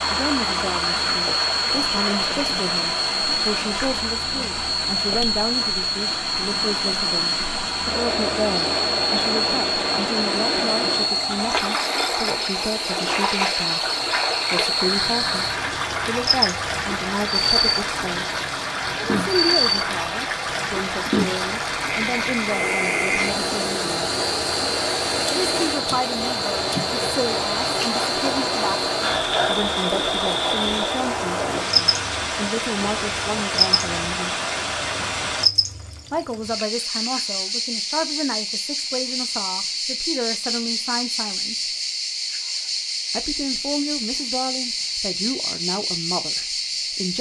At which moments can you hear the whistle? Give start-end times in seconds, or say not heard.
not heard.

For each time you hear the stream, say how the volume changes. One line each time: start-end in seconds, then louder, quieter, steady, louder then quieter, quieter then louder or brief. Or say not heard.
0.0-35.5 steady.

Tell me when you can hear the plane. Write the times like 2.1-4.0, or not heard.
not heard.